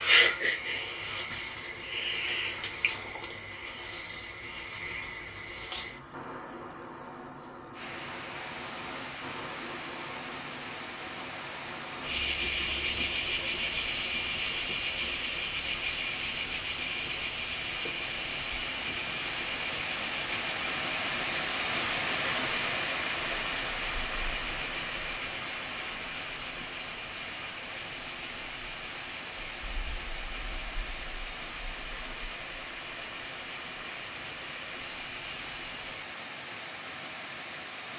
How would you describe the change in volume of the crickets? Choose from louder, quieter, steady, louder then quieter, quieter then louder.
quieter.